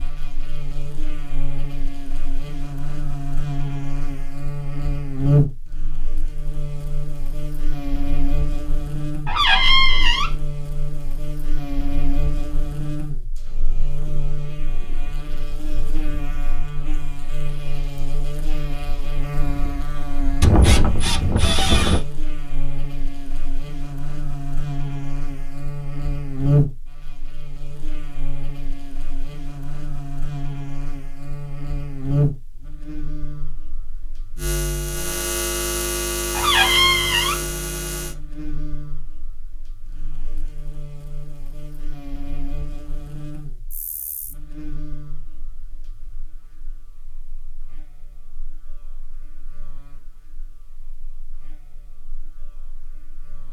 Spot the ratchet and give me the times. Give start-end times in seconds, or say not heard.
20.4-22.1.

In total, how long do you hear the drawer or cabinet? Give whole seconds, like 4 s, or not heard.
2 s.